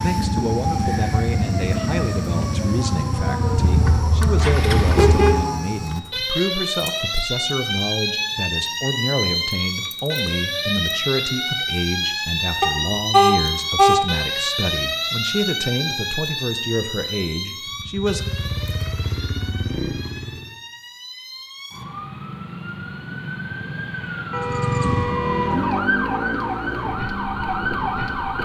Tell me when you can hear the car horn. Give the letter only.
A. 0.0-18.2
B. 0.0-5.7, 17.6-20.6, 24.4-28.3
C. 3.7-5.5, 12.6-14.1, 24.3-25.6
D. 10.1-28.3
C.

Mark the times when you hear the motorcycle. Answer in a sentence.
You can hear the motorcycle from 0.0 to 5.7 s, from 17.6 to 20.6 s and from 24.4 to 28.3 s.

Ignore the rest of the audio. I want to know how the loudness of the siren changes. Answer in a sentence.
The loudness of the siren goes down, then up.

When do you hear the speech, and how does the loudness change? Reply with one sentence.
The speech can be heard from 0.0 to 18.2 s, at a steady volume.